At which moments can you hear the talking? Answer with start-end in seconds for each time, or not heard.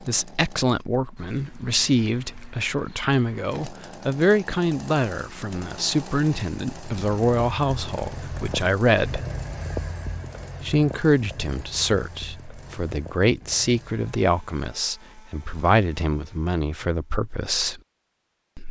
0.1-9.2, 10.6-17.8.